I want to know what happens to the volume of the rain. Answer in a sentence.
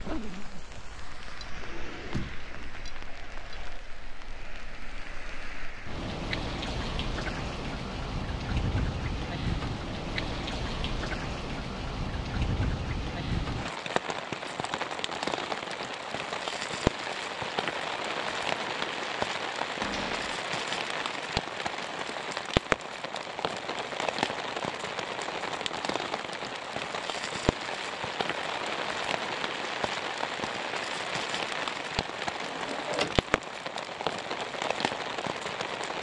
The loudness of the rain goes up.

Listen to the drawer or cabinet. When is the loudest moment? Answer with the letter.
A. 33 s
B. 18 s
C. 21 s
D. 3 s
A.